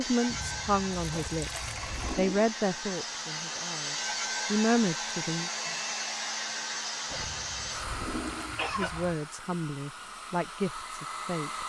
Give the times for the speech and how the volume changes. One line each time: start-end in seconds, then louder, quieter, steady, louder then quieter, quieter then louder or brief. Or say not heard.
0.0-5.5 quieter then louder
8.8-11.6 brief.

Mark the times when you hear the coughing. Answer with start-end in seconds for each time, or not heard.
1.1-2.5, 7.0-9.0.